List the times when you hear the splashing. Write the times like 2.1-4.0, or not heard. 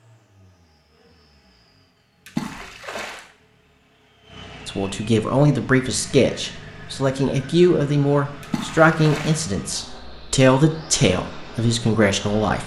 2.2-3.2, 8.4-9.4.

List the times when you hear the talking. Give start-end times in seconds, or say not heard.
4.7-12.6.